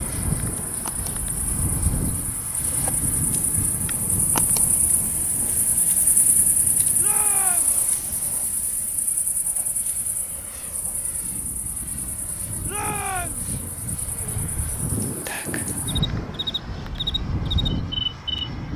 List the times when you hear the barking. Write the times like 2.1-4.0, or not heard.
not heard.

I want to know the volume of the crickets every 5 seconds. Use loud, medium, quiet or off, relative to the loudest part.
medium, quiet, quiet, loud.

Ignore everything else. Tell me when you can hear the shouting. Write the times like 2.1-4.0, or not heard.
7.0-7.8, 12.7-13.5.